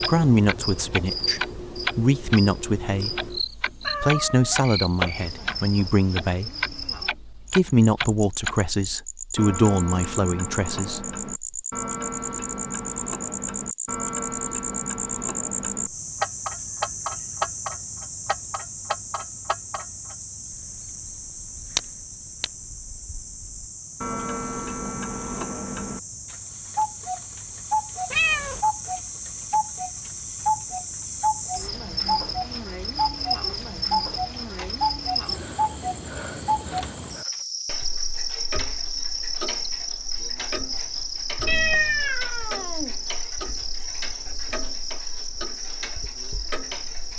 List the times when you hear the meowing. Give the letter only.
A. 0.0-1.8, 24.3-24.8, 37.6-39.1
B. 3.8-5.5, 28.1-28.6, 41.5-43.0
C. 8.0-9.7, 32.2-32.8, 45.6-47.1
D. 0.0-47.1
B.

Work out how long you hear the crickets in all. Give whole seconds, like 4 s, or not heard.
47 s.